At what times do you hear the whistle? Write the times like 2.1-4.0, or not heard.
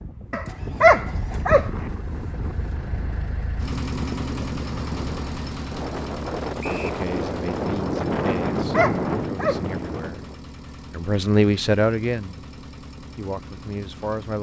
6.6-7.0.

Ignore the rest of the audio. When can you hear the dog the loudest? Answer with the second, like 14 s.
1 s.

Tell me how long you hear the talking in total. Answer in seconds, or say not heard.
6 s.